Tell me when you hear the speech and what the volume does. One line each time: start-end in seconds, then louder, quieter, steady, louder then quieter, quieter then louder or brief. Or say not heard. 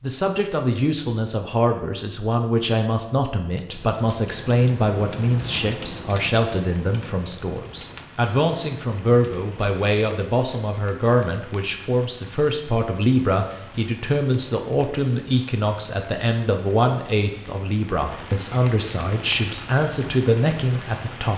0.0-21.3 steady.